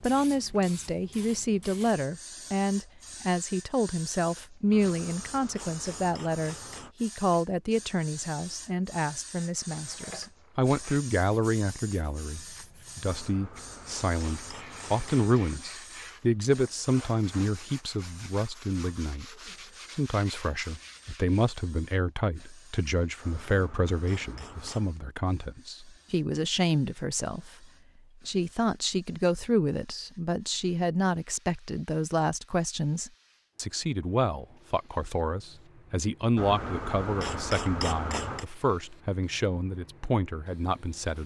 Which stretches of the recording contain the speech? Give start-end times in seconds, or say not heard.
0.0-19.2, 19.9-27.6, 28.2-41.2.